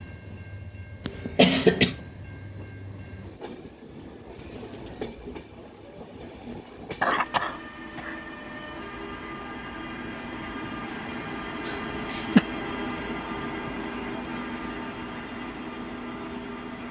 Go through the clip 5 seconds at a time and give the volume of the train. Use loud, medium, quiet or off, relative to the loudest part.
medium, medium, loud, loud.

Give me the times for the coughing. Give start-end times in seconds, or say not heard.
1.1-1.9, 7.0-8.2, 11.7-12.4.